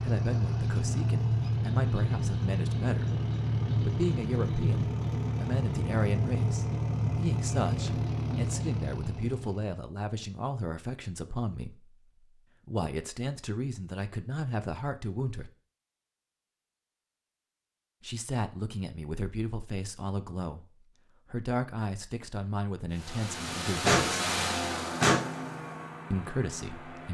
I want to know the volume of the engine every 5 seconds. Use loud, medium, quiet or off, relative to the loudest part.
loud, loud, off, off, loud, medium.